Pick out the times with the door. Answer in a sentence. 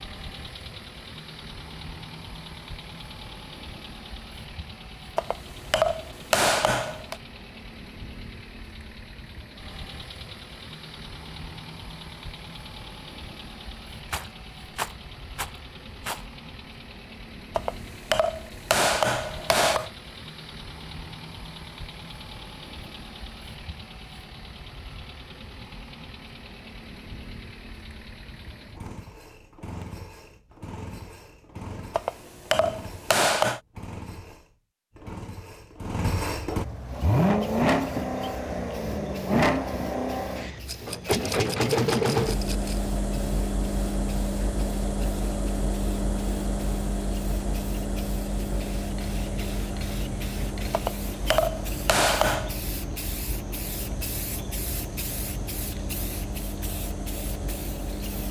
You can't hear the door here.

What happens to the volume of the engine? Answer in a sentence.
The loudness of the engine goes up, then down.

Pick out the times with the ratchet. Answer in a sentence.
You can't hear the ratchet here.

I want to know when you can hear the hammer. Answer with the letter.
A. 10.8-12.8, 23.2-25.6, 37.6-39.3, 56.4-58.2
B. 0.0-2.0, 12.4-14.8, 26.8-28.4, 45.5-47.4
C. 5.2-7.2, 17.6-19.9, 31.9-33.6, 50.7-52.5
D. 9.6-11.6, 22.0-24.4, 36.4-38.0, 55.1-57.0
C.